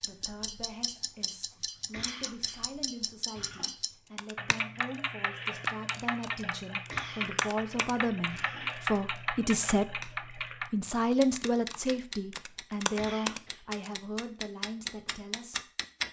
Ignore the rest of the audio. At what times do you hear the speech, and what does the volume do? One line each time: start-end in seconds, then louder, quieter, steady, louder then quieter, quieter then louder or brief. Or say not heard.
0.0-15.7 louder then quieter.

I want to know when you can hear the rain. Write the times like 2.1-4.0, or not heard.
not heard.